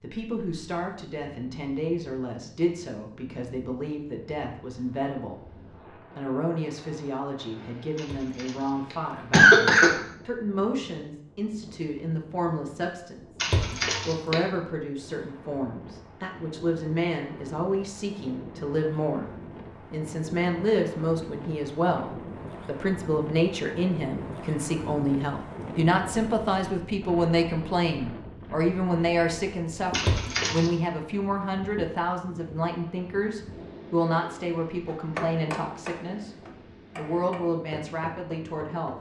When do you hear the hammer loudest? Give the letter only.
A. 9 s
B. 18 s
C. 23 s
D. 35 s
D.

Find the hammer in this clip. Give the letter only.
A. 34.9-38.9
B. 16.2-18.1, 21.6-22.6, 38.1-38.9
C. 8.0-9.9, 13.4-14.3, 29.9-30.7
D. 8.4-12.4
A.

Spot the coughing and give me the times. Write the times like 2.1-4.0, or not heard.
8.0-9.9, 13.4-14.3, 29.9-30.7.